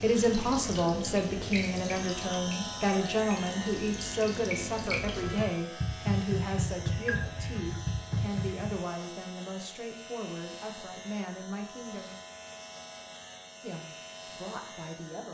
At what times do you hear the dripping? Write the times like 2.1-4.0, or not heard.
0.0-8.8.